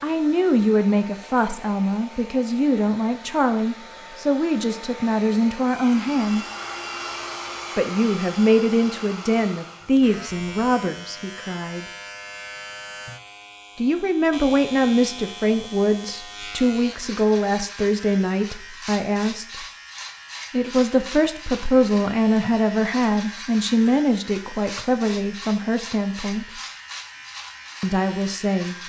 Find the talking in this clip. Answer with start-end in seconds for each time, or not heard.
0.0-6.5, 7.8-11.8, 13.8-19.6, 20.5-26.4, 27.8-28.8.